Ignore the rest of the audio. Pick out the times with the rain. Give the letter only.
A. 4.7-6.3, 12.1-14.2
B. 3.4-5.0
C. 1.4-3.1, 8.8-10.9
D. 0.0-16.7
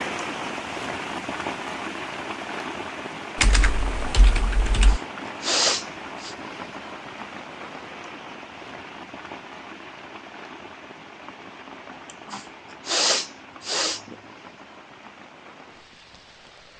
D.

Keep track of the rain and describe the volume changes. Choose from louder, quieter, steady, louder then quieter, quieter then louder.
quieter.